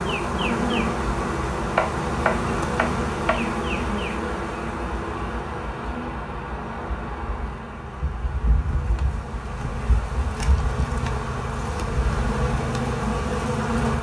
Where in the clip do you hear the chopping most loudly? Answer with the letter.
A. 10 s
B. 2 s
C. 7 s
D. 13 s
B.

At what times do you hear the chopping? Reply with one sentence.
You can hear the chopping from 1.8 to 3.4 s.